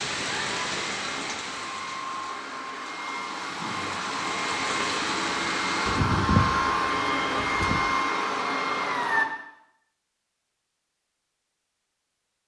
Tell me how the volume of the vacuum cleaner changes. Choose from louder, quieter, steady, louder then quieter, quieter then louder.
louder.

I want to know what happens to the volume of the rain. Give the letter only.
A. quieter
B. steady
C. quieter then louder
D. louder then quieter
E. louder
C.